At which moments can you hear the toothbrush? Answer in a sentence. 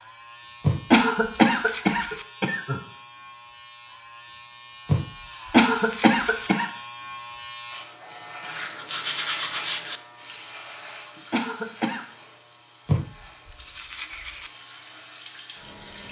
You can hear the toothbrush from 0.6 to 2.2 s, from 4.8 to 6.5 s, from 8.4 to 10.0 s and from 12.8 to 14.5 s.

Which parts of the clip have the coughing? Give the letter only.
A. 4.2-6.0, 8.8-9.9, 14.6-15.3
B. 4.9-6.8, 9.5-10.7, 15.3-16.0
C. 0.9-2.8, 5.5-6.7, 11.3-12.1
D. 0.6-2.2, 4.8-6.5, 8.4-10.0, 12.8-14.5
C.